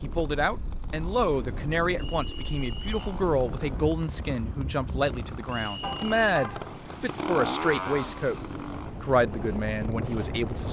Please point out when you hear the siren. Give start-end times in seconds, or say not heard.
not heard.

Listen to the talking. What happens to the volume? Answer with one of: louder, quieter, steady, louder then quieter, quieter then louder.
steady.